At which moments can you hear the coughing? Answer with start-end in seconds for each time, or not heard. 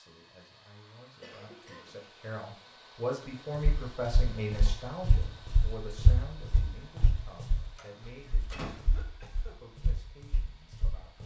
1.2-2.0, 8.6-9.6.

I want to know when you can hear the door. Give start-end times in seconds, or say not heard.
7.8-8.8.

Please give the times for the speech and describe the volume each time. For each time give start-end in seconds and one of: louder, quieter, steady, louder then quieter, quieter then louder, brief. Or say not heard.
0.0-11.2 louder then quieter.